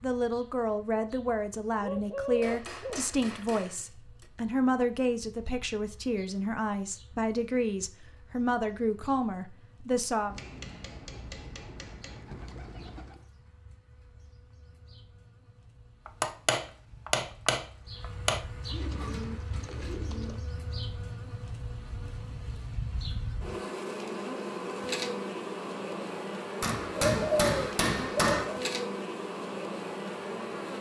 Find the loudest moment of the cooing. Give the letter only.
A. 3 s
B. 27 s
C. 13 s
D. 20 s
B.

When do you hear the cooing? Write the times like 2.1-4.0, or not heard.
1.8-3.5, 10.2-13.2, 18.6-20.4, 27.0-28.4.